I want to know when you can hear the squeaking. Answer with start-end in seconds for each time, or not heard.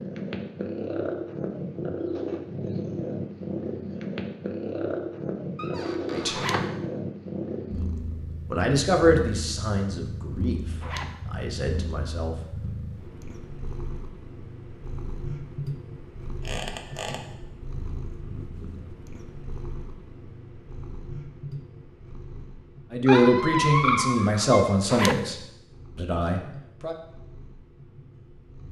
5.5-6.7, 16.4-17.2, 23.1-24.6.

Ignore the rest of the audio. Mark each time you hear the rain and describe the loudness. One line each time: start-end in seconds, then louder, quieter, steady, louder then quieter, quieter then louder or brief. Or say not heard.
not heard.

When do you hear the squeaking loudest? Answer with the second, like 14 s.
24 s.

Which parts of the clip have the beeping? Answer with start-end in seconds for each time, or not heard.
not heard.